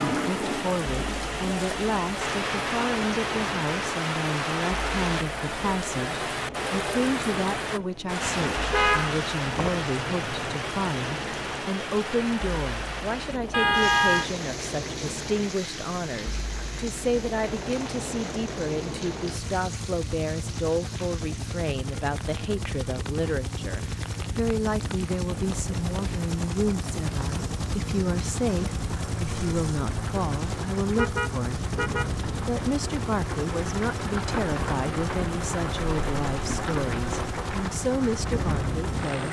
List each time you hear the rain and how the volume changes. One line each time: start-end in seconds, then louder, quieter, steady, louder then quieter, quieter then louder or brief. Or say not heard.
0.0-39.2 quieter then louder.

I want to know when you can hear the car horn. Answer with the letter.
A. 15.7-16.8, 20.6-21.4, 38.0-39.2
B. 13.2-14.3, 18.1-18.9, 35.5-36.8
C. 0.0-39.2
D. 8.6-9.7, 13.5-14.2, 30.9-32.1
D.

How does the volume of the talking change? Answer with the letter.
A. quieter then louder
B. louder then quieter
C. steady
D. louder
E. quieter
C.